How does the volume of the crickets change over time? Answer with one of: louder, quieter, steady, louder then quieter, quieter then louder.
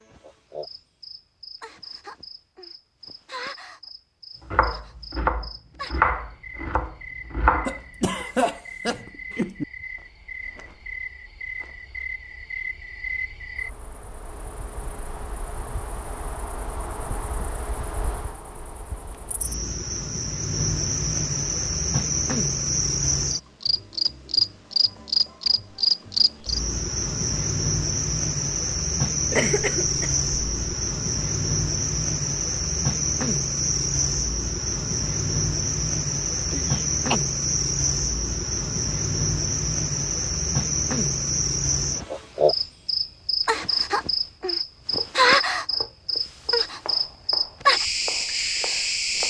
louder.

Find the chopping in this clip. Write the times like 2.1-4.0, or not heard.
4.5-8.2, 44.9-49.2.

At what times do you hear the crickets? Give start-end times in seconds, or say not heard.
0.0-49.2.